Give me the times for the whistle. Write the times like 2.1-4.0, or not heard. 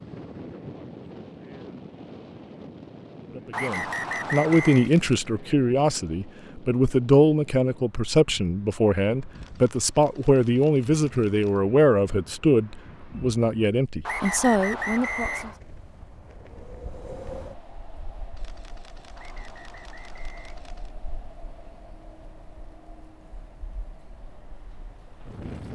3.5-4.9, 14.1-15.6, 19.1-20.7.